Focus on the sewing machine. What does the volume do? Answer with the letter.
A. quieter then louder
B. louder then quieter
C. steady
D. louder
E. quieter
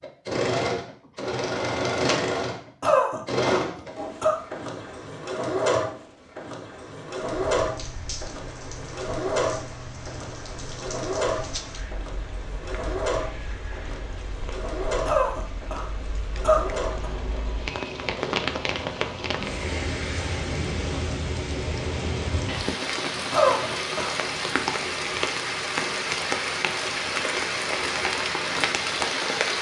E.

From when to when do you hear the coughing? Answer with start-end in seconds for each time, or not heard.
2.8-4.3, 15.1-17.1, 23.3-24.3.